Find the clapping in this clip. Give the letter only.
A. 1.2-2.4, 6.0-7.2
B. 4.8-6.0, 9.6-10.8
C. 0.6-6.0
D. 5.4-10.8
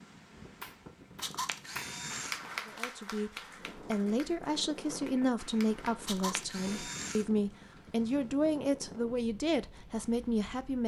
C.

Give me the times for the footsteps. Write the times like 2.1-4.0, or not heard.
not heard.